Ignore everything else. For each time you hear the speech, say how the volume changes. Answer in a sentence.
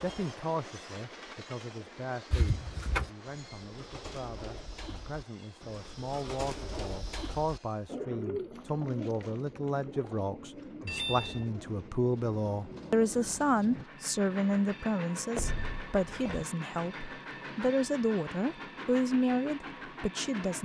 The speech can be heard from 0.0 to 20.6 s, getting louder.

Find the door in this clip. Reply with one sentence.
You can hear the door from 2.3 to 3.1 s, from 10.8 to 11.5 s and from 15.3 to 16.4 s.